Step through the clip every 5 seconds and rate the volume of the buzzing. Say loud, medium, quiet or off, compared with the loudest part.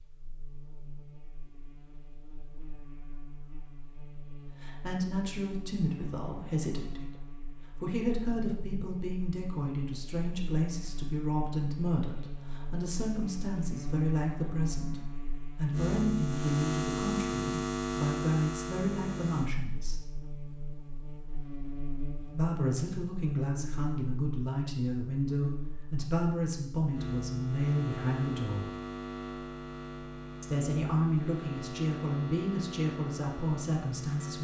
quiet, quiet, medium, loud, medium, medium, medium.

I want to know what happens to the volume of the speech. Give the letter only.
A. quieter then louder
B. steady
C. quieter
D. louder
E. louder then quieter
B.